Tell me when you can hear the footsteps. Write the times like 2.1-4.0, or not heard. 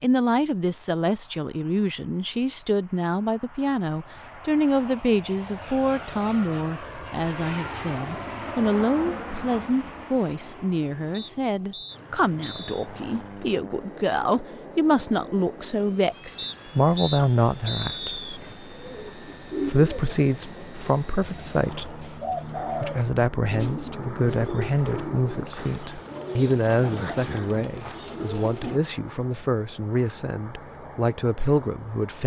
not heard.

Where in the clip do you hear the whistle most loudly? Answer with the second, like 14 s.
18 s.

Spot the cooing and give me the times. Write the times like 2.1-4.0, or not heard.
18.4-28.8.